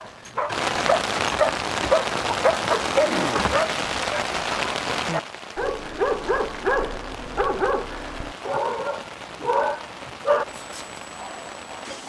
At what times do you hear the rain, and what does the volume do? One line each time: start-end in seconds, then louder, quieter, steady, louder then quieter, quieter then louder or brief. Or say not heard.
0.0-12.0 quieter.